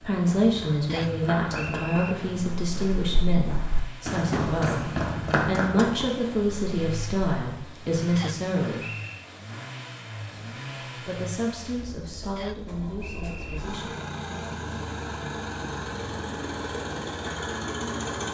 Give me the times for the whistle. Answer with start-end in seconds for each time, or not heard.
0.8-2.1, 8.2-9.2, 12.3-13.6.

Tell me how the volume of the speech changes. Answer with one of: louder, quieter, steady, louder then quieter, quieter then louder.
quieter.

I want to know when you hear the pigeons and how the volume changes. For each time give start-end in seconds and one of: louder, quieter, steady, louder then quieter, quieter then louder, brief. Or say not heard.
not heard.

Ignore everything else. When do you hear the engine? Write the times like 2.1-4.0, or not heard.
0.0-18.2.